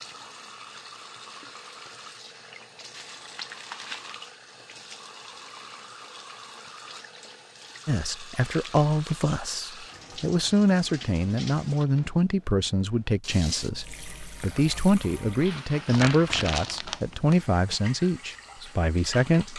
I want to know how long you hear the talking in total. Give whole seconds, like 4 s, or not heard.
12 s.